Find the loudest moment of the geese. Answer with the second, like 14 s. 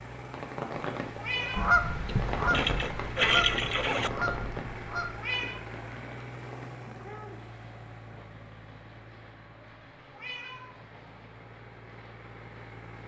2 s.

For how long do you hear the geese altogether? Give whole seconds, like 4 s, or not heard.
4 s.